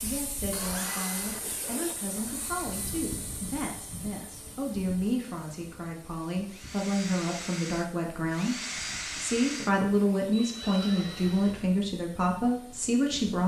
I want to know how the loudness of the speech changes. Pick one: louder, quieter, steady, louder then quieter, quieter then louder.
louder.